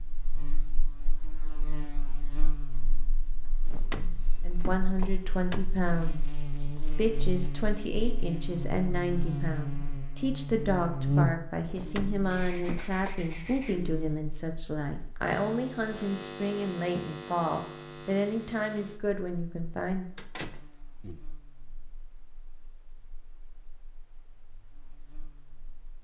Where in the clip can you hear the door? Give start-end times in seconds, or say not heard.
3.6-5.7, 11.7-13.2, 20.1-21.2.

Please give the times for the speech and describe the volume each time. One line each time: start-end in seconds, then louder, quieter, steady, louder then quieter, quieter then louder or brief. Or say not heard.
4.5-20.1 steady.